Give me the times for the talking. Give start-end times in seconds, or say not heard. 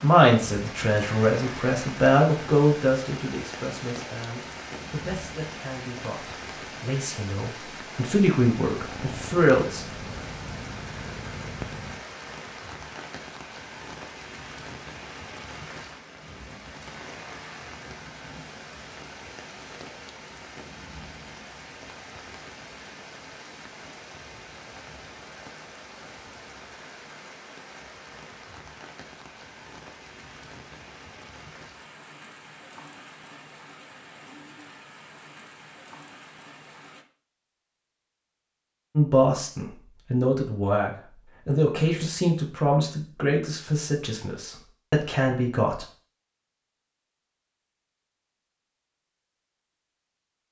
0.0-9.9, 39.0-45.9.